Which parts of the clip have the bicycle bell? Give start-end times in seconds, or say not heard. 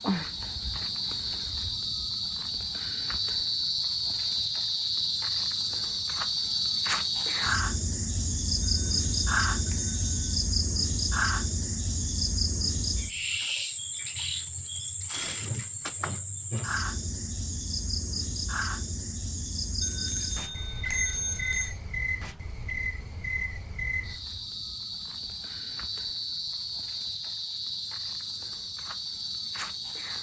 8.6-10.2, 19.8-21.8.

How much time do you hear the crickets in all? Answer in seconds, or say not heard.
30 s.